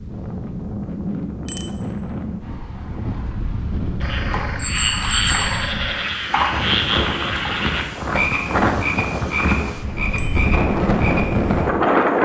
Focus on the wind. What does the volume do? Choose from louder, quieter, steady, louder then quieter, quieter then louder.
louder.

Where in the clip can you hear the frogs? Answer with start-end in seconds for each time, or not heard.
4.0-11.9.